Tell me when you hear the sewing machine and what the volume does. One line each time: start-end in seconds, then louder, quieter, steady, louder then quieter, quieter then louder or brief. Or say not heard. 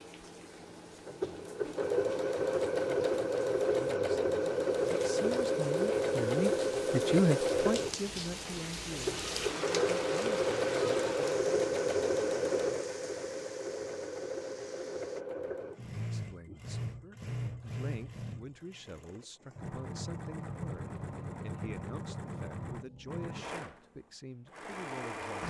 0.0-25.4 quieter.